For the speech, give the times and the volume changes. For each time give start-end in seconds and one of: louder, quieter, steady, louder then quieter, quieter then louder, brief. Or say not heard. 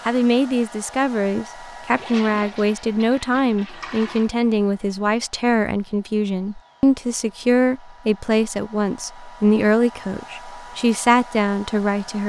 0.1-12.2 steady.